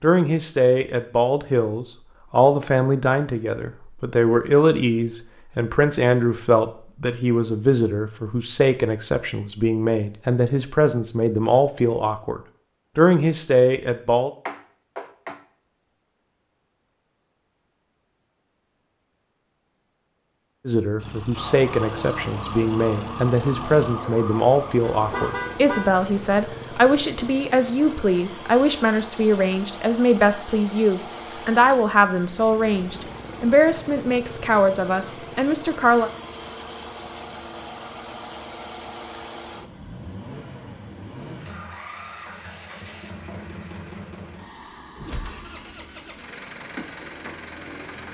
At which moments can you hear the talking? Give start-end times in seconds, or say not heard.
0.0-14.3, 20.6-36.1.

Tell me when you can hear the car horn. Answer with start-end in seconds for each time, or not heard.
14.4-15.4, 24.9-26.0.